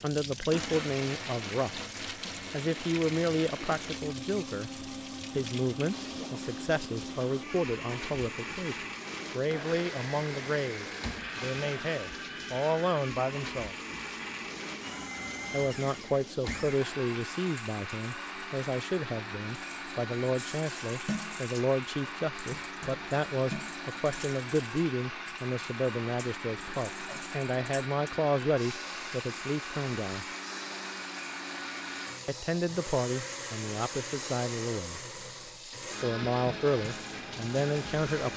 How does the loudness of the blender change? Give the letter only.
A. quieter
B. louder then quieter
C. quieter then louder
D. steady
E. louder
D.